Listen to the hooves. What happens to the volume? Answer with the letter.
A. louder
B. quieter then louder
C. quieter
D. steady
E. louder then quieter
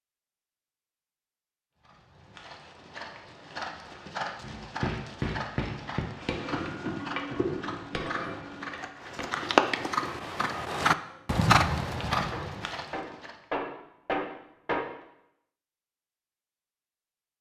A.